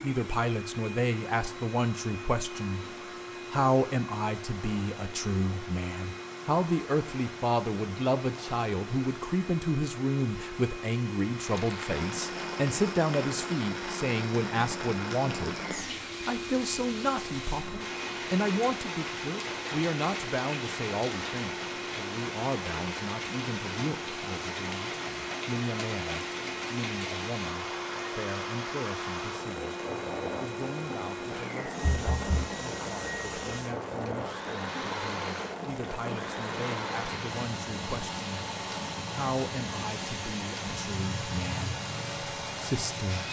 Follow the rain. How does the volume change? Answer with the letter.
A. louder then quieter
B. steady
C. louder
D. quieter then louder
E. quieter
B.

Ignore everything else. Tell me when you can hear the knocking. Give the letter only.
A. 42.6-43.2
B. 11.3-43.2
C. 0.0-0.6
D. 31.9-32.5
D.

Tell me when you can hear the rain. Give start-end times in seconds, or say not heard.
11.3-43.2.